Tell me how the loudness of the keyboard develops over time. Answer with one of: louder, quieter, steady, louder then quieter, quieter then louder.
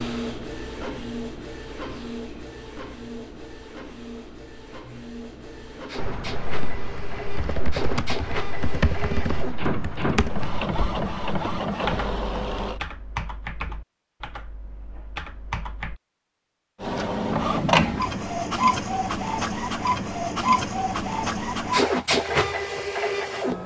louder then quieter.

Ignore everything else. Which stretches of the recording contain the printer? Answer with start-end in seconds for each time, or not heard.
0.0-12.8, 16.8-23.6.